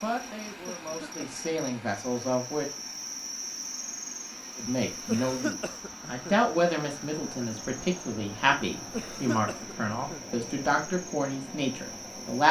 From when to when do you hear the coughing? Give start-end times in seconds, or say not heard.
0.7-1.4, 5.0-6.5, 8.9-10.3.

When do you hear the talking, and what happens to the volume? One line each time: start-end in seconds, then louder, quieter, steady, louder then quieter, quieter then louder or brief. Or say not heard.
0.0-2.6 brief
4.5-12.4 steady.